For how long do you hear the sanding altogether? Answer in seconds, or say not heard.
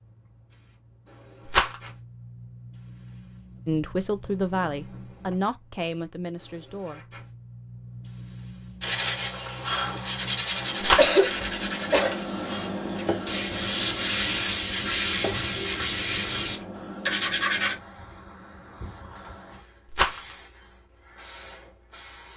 9 s.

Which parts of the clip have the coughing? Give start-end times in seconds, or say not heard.
10.9-12.2.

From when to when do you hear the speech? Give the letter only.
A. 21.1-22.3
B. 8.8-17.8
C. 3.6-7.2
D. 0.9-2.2
C.